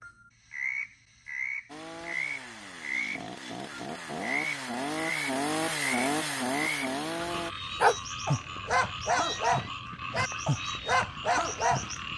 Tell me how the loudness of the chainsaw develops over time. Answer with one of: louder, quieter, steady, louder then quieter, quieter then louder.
louder.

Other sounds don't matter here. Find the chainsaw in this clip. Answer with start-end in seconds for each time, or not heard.
1.6-7.5.